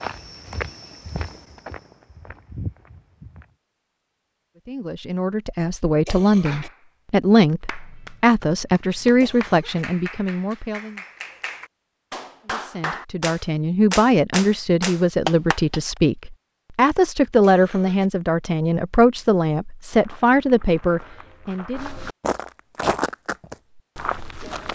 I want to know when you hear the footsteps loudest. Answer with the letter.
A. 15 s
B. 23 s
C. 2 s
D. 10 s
B.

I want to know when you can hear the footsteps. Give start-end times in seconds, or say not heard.
0.0-3.5, 19.9-24.7.